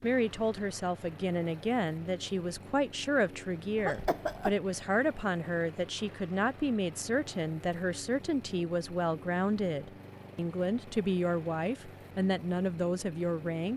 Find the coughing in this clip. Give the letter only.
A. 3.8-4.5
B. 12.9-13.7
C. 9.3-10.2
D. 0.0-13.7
A.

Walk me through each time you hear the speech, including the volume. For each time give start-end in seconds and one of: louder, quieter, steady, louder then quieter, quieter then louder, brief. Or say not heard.
0.0-13.7 steady.